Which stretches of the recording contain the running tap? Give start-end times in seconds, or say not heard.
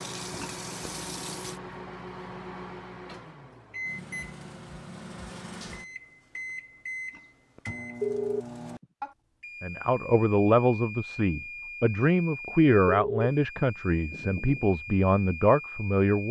0.0-1.6.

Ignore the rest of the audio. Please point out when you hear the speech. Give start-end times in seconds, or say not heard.
9.6-16.2.